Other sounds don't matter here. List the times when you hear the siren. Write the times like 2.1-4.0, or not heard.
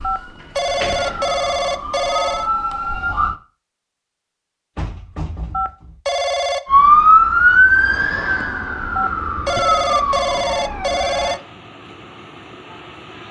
0.0-3.4, 6.7-11.3.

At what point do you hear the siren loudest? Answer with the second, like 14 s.
7 s.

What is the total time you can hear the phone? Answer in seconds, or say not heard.
6 s.